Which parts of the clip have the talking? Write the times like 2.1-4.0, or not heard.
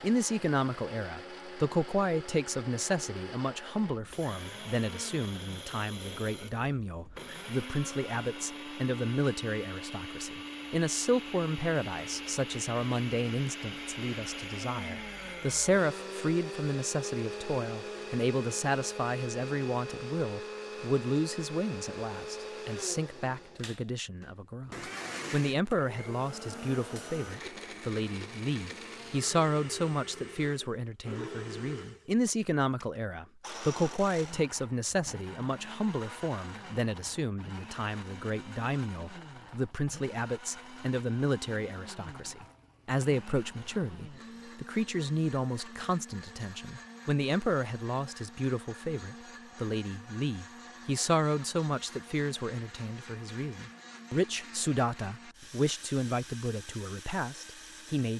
0.0-24.7, 25.3-58.1.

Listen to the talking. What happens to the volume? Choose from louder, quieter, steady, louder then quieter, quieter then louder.
steady.